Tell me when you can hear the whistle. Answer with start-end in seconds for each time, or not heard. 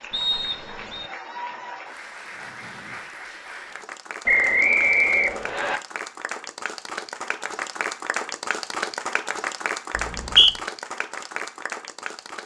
0.1-1.1, 4.2-5.8, 9.9-10.6.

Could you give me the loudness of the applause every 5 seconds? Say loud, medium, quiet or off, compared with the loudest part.
medium, loud, loud.